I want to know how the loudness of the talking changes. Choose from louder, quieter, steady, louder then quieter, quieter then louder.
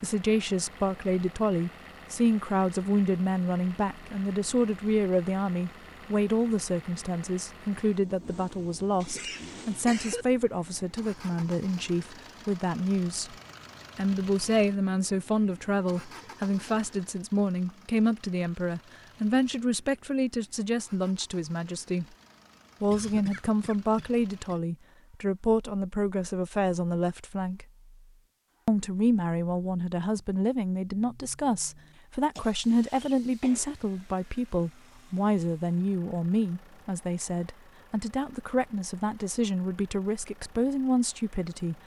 steady.